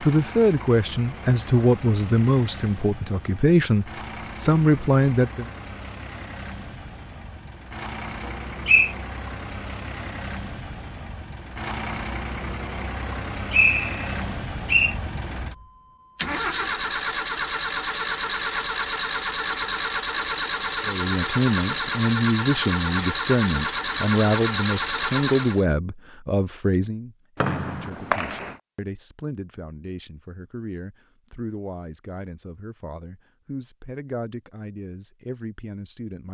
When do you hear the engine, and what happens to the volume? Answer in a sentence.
The engine can be heard from 0.0 to 25.6 s, getting louder.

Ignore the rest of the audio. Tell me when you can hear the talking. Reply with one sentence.
You can hear the talking from 0.0 to 5.5 s and from 20.9 to 36.2 s.